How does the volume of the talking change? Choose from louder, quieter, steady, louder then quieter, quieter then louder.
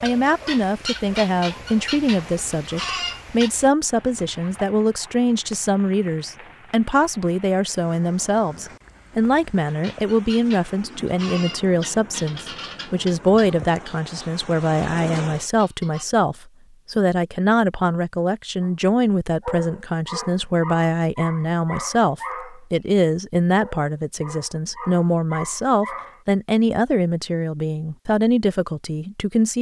steady.